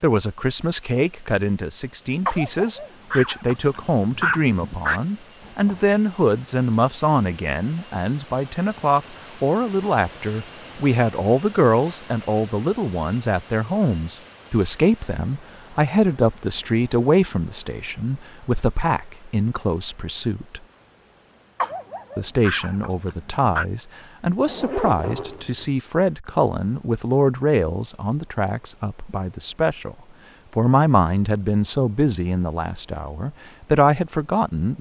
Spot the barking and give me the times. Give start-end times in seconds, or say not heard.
2.2-5.0, 21.6-23.6.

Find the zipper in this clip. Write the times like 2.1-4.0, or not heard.
5.4-6.0, 24.4-25.8.